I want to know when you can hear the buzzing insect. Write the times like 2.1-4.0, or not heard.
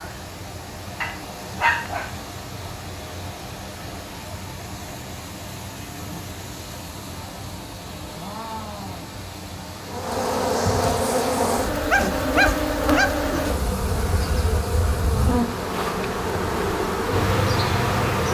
9.8-18.2.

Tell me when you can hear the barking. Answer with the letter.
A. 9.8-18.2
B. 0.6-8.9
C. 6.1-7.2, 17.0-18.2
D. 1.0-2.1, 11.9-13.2
D.